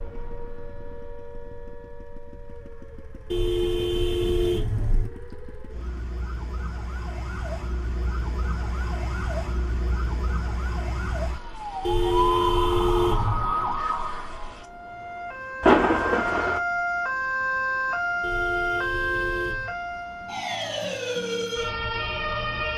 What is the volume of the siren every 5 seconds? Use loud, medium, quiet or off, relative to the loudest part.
quiet, medium, loud, loud, loud.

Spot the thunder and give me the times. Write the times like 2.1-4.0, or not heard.
15.6-16.6.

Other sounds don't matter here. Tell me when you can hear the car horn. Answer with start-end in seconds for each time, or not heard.
3.3-5.1, 11.8-13.5, 18.2-19.8.